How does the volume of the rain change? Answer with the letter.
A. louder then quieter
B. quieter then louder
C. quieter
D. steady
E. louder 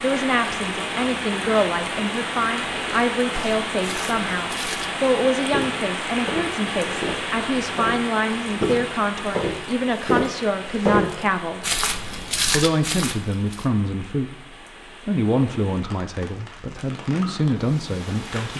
C.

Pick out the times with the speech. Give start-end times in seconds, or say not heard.
0.0-11.7, 12.5-14.3, 15.1-18.5.